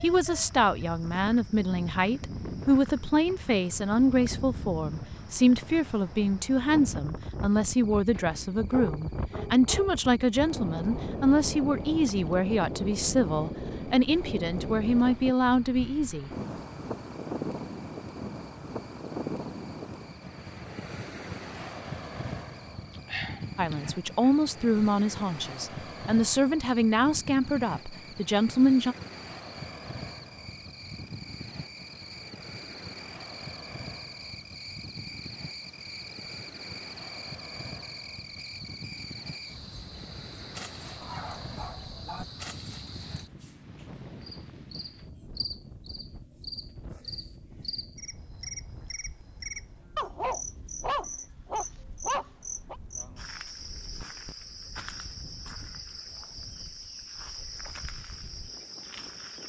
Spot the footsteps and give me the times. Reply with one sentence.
The footsteps can't be heard in this clip.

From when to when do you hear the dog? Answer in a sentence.
The dog can be heard from 8.2 to 9.9 s, from 23.1 to 24.3 s, from 41.0 to 42.2 s and from 50.0 to 52.8 s.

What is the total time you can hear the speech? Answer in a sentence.
You can hear the speech for 22 seconds altogether.